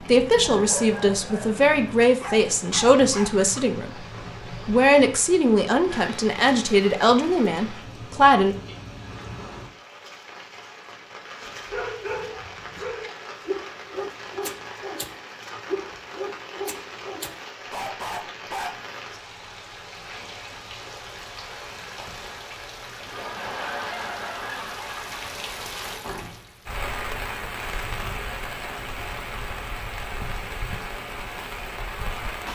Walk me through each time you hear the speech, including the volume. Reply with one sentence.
The speech can be heard from 0.0 to 8.6 s, at a steady volume.